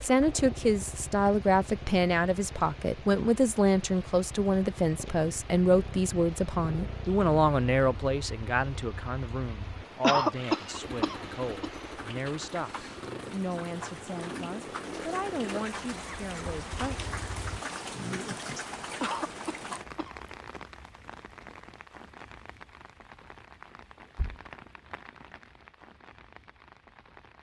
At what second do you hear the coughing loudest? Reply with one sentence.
The volume of the coughing peaks at 10 seconds.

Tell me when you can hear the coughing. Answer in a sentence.
You can hear the coughing from 10.0 to 11.7 s and from 19.0 to 20.1 s.